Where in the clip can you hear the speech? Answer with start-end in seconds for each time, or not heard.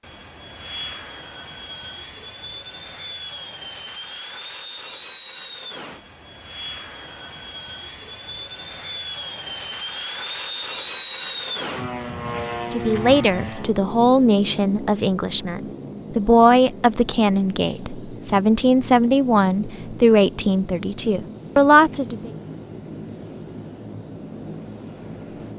12.6-22.3.